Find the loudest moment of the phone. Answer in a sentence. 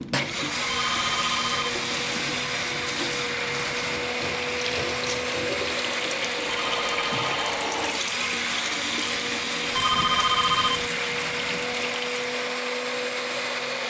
The loudest moment of the phone is at 10 seconds.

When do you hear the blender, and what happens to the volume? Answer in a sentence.
The blender can be heard from 0.0 to 13.8 s, at a steady volume.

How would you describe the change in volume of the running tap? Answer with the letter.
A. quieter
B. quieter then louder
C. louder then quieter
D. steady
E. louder
D.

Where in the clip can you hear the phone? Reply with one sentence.
The phone can be heard from 0.7 to 1.8 s, from 6.5 to 7.6 s and from 9.7 to 10.9 s.